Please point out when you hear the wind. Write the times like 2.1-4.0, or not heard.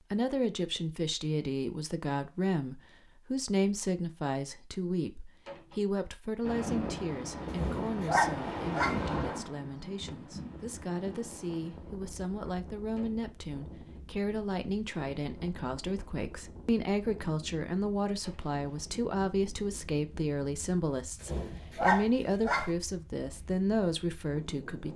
6.4-24.9.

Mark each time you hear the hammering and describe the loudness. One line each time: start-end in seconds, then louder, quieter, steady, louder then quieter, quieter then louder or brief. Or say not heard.
not heard.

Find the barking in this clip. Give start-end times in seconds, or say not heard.
7.5-9.0, 21.2-22.7.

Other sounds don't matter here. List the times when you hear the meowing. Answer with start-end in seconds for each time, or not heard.
not heard.